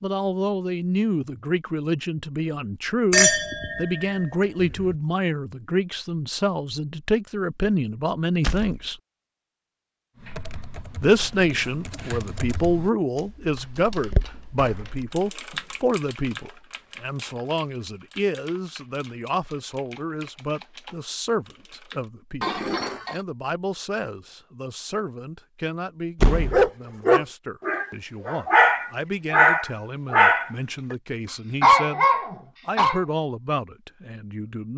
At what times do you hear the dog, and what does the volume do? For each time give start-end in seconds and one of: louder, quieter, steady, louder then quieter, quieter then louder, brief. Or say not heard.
26.5-30.9 quieter then louder
31.6-33.0 brief.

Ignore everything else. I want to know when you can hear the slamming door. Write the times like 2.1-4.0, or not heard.
8.4-8.8, 14.3-15.8, 26.1-26.7.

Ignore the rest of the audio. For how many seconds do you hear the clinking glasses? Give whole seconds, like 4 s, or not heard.
3 s.